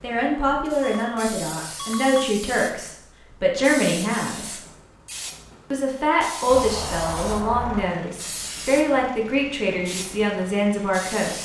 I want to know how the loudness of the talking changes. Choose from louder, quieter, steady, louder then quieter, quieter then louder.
steady.